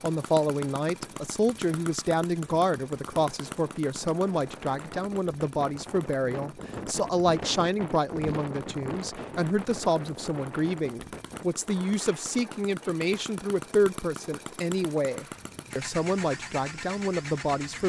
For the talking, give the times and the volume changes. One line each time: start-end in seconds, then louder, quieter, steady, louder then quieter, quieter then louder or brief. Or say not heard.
0.0-17.8 steady.